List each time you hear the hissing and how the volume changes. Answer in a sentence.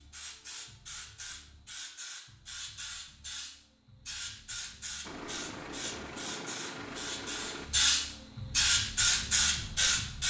The hissing can be heard from 0.0 to 10.2 s, getting louder.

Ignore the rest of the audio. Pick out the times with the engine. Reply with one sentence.
The engine can be heard from 5.0 to 8.2 s.